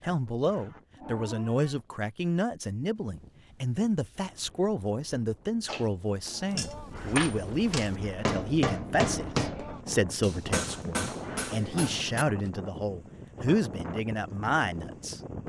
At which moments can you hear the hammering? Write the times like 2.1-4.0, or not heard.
5.7-12.5.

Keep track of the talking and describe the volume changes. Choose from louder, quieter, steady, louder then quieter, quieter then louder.
steady.